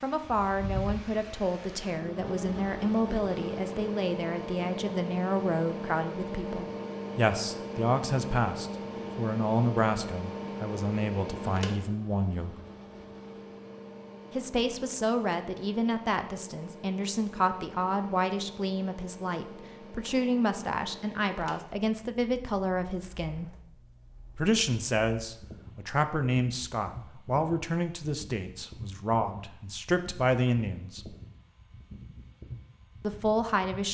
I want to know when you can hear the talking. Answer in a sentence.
The talking can be heard from 0.0 to 12.6 s, from 14.3 to 23.5 s, from 24.4 to 31.1 s and from 33.0 to 33.8 s.